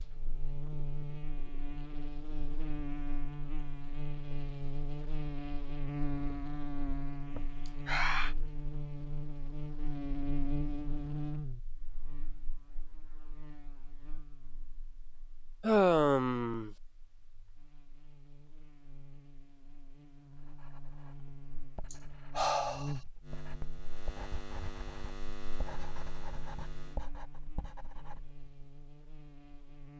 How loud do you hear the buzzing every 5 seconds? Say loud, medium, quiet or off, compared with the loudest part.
loud, loud, loud, quiet, medium, medium.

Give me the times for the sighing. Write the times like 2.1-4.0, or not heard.
7.3-8.3, 15.6-16.7, 21.9-22.9.